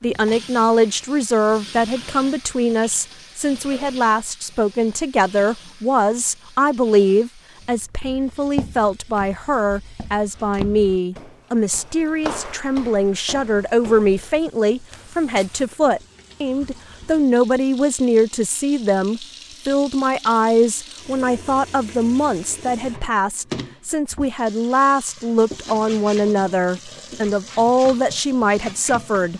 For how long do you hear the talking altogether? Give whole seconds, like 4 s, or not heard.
29 s.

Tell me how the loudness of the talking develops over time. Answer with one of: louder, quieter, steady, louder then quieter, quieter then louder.
steady.